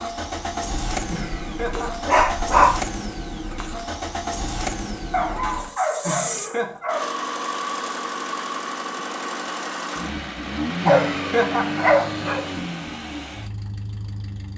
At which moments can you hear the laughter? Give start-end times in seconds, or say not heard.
1.1-2.1, 6.0-6.8, 10.8-11.8.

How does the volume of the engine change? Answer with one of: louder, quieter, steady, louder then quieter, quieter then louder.
steady.